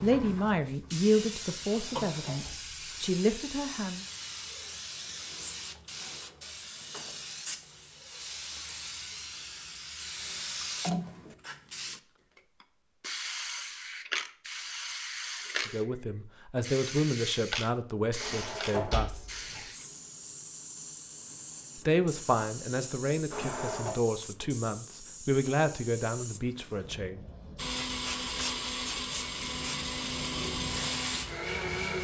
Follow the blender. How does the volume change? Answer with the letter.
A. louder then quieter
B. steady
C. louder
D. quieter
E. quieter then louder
B.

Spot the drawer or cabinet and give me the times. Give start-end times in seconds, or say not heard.
1.7-2.5, 18.2-19.6, 23.3-23.9.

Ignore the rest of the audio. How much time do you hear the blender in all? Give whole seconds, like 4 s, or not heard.
4 s.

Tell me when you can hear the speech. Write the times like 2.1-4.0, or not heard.
0.0-4.0, 15.7-19.2, 21.9-27.2.